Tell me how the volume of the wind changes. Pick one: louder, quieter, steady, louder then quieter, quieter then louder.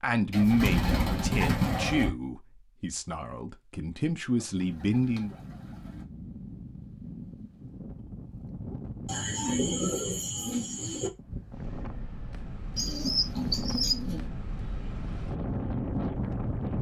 louder.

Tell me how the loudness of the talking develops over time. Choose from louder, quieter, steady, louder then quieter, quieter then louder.
quieter then louder.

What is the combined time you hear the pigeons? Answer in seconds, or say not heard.
7 s.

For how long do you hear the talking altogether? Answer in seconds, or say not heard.
5 s.